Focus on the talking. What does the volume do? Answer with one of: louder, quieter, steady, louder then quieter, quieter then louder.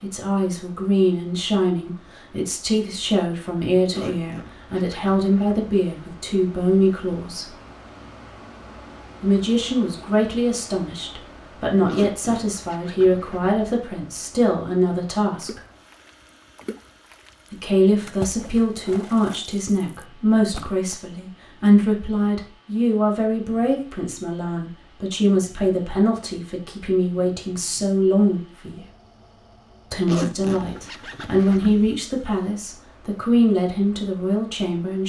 steady.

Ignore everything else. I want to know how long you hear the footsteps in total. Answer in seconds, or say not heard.
not heard.